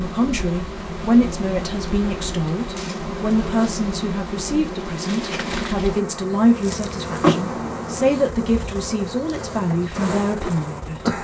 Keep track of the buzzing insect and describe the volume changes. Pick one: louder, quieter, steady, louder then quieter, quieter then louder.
steady.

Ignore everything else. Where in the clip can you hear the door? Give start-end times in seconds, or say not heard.
7.2-8.1.